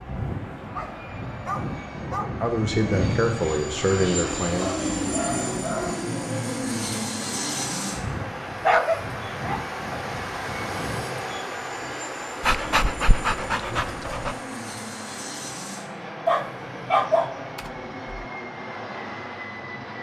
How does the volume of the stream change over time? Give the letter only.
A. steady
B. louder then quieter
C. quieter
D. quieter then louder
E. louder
B.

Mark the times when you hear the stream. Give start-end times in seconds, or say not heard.
0.0-19.9.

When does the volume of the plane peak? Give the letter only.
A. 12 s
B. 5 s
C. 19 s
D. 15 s
B.